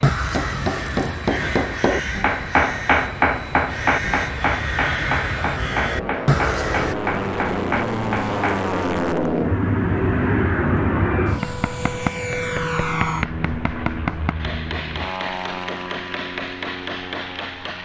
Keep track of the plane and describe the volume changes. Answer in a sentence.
The loudness of the plane goes up, then down.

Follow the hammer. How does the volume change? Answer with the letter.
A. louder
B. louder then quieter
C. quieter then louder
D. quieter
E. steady
D.